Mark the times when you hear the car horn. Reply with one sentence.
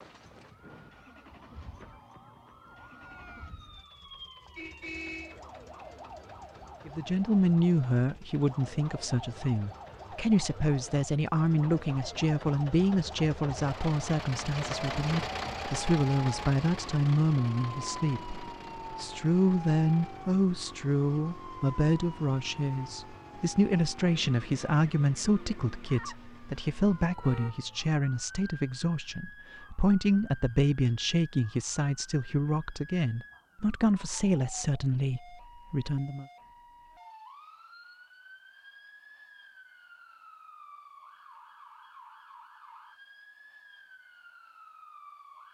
The car horn can be heard from 4.5 to 5.4 s and from 27.1 to 27.7 s.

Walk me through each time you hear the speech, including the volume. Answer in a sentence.
The speech can be heard from 6.8 to 36.2 s, at a steady volume.